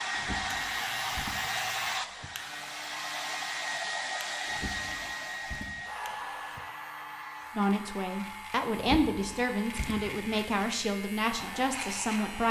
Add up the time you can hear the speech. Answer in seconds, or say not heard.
5 s.